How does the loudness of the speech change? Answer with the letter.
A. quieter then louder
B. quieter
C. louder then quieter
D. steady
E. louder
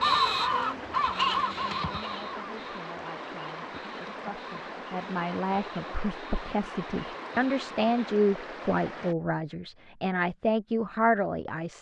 E.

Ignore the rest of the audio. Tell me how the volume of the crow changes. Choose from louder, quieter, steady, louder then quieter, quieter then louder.
quieter.